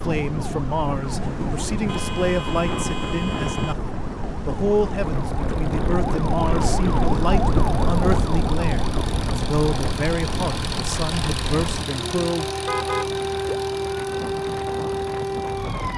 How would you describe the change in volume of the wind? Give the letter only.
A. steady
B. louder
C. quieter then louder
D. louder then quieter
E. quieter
E.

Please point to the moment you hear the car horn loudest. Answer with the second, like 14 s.
13 s.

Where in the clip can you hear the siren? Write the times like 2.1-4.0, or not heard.
0.0-15.9.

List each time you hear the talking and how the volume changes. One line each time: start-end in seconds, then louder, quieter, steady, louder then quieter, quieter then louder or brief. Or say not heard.
0.0-12.5 steady.